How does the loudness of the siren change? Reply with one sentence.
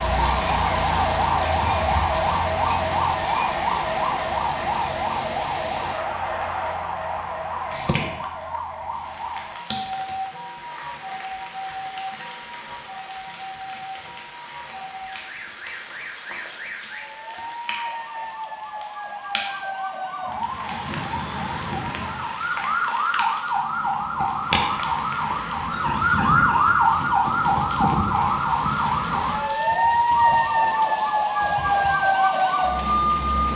The loudness of the siren goes down, then up.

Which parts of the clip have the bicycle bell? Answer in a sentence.
The bicycle bell can't be heard in this clip.